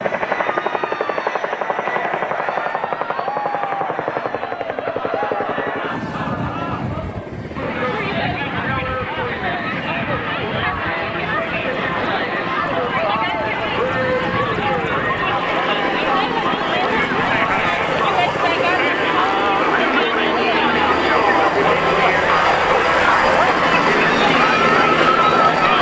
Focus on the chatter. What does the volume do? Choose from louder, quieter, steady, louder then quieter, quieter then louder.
louder.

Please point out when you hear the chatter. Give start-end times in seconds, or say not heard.
0.1-25.7.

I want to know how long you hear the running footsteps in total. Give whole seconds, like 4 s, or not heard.
not heard.